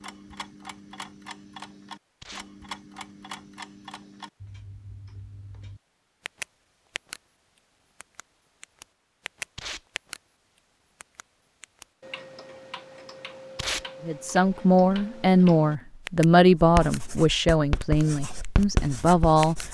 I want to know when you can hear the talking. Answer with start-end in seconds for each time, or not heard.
14.0-19.6.